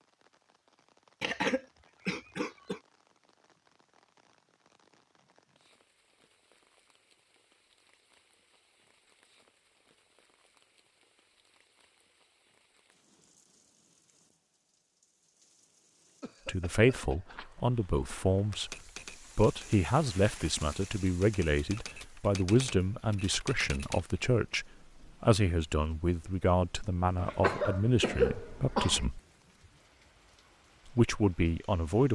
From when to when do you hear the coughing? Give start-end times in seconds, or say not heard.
1.2-2.8, 16.2-17.5, 27.1-29.1.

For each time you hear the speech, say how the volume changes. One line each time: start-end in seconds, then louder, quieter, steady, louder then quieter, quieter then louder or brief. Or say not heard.
16.4-18.8 brief
19.4-29.2 steady
30.9-32.0 brief.